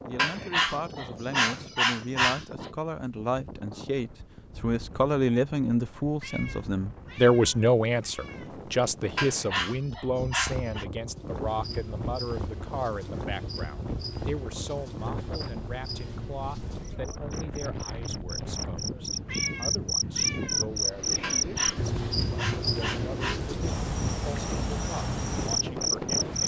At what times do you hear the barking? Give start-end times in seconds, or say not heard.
0.1-2.7, 9.2-10.8, 21.2-23.4.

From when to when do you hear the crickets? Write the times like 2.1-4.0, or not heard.
11.1-26.4.